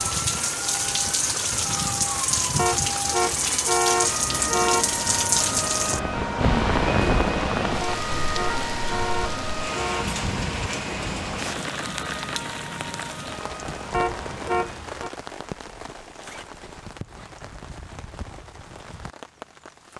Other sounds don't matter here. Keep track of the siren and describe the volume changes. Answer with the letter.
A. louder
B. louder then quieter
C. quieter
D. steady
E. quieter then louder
B.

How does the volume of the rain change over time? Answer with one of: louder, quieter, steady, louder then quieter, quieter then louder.
quieter.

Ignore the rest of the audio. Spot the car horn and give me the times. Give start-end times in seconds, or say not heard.
2.5-4.9, 7.8-10.2, 13.9-15.1.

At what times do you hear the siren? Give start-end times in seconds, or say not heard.
0.0-14.8.